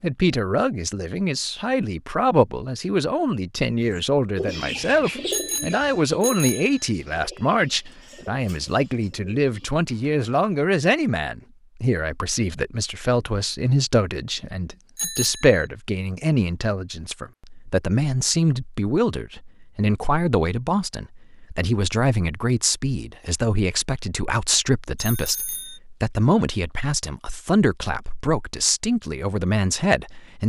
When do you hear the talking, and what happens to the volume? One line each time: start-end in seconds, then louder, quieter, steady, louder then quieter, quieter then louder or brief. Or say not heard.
0.0-30.4 steady.